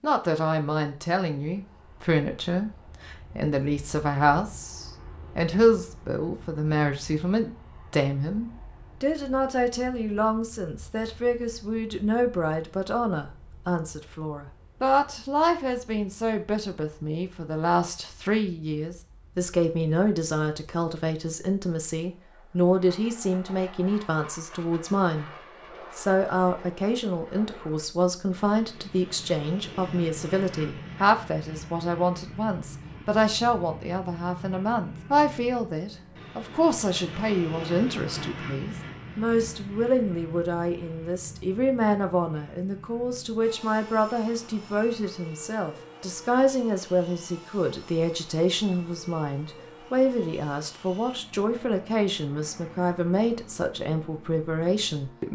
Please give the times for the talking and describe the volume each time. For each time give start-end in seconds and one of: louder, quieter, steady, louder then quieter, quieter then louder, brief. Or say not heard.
0.0-25.3 steady
25.9-55.3 steady.